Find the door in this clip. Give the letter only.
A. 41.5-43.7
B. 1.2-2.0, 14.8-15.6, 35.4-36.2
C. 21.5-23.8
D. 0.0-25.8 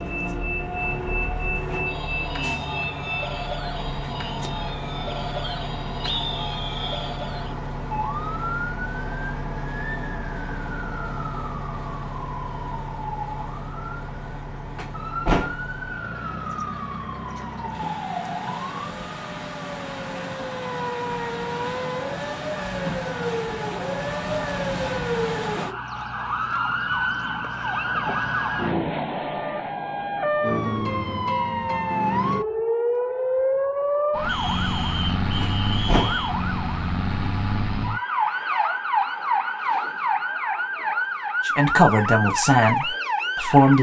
B.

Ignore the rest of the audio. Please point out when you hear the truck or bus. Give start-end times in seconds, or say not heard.
0.0-25.8.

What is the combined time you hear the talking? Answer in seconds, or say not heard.
2 s.